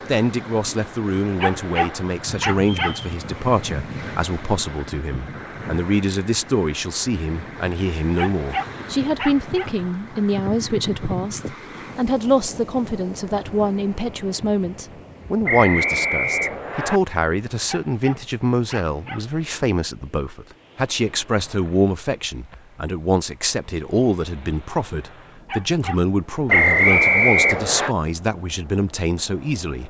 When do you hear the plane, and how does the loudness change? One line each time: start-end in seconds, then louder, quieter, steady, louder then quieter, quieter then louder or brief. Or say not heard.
not heard.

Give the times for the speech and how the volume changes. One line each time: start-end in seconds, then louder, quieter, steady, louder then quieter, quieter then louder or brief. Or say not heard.
0.1-29.8 steady.